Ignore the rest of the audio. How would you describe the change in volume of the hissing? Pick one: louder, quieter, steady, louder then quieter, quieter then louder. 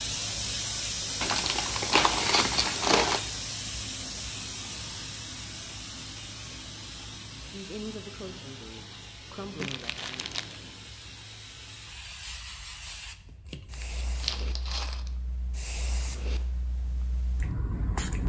quieter.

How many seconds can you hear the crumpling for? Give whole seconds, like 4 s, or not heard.
4 s.